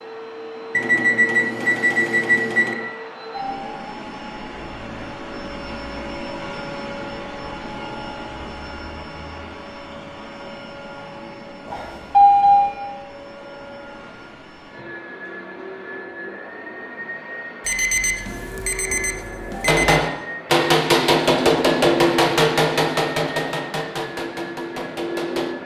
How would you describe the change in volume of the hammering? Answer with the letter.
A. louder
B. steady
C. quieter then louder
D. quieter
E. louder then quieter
D.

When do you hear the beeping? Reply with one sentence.
You can hear the beeping from 0.7 to 2.8 s, from 11.7 to 12.8 s and from 17.6 to 20.0 s.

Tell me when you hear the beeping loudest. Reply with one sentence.
The volume of the beeping peaks at 12 seconds.